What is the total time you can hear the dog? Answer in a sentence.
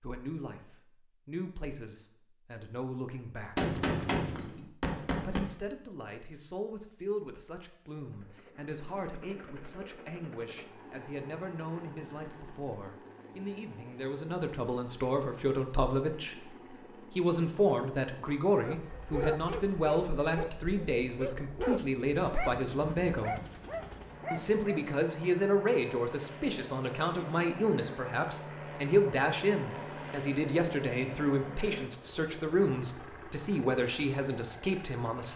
You can hear the dog for 6 seconds altogether.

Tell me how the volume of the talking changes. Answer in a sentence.
The loudness of the talking goes up.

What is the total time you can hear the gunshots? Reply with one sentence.
You can hear the gunshots for 2 seconds altogether.